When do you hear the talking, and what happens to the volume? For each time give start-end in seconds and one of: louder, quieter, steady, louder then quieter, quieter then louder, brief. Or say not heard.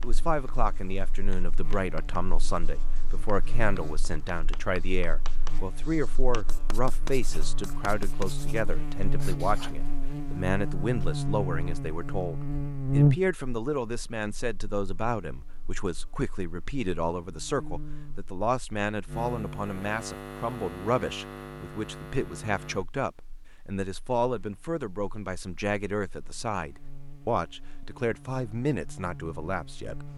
0.0-30.1 steady.